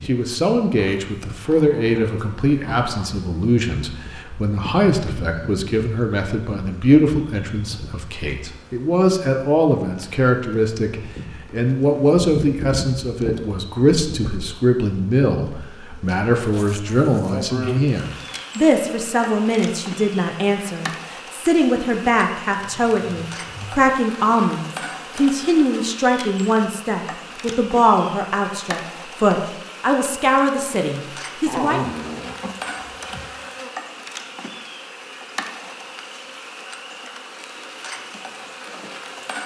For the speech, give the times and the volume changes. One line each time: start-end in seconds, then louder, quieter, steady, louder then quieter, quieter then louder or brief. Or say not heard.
0.1-31.8 steady.